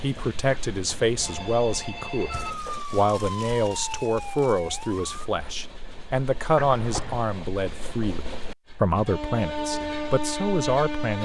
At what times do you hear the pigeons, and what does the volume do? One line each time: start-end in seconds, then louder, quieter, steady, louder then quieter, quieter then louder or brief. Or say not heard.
not heard.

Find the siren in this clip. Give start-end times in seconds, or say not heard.
2.2-5.3.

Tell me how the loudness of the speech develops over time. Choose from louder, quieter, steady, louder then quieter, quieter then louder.
steady.